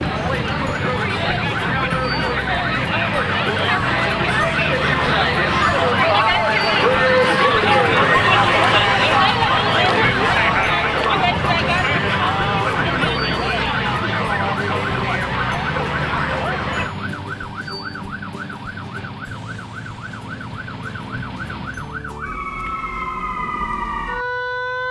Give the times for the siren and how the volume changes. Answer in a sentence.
The siren can be heard from 0.0 to 24.8 s, at a steady volume.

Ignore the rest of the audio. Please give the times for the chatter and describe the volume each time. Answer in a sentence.
You can hear the chatter from 0.0 to 16.9 s, getting louder then quieter.